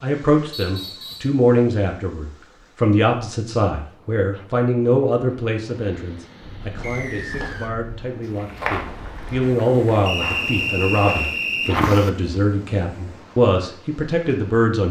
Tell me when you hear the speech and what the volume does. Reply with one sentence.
The speech can be heard from 0.0 to 14.8 s, getting quieter then louder.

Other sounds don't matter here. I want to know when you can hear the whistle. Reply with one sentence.
The whistle can be heard from 0.5 to 1.4 s, from 6.8 to 7.7 s and from 10.1 to 11.8 s.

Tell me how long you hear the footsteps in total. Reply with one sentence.
You can hear the footsteps for 6 seconds altogether.